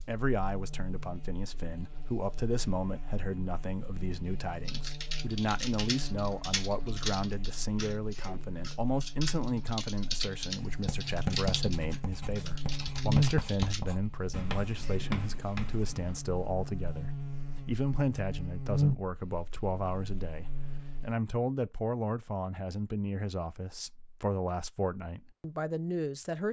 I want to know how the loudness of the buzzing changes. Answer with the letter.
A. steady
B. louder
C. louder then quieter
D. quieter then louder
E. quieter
B.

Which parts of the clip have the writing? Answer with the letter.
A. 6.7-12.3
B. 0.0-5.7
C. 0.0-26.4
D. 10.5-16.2
D.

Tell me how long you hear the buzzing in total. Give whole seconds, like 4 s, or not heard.
21 s.